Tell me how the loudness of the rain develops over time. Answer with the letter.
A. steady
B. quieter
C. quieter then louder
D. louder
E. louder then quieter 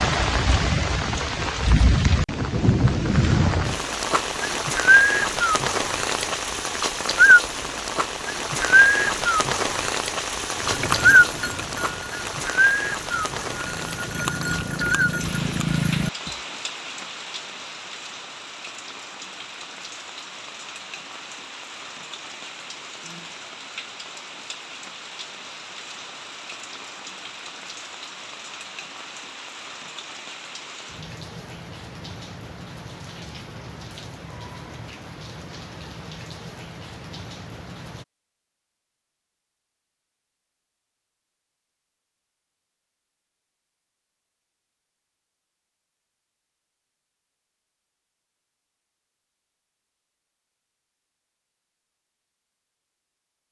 B.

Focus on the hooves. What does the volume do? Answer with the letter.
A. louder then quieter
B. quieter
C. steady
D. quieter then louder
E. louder
D.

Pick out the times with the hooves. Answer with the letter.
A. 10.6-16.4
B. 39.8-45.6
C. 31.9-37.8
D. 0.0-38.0
A.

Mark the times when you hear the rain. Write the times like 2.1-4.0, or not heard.
0.0-38.0.